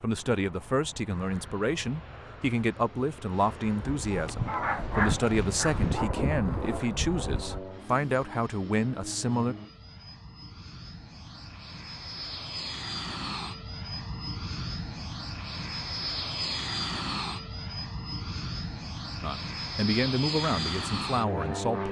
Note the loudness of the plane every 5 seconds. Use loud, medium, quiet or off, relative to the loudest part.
quiet, medium, medium, loud, loud.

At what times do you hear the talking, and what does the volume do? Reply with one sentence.
The talking can be heard from 0.0 to 9.6 s, at a steady volume; and briefly from 19.2 to 21.8 s.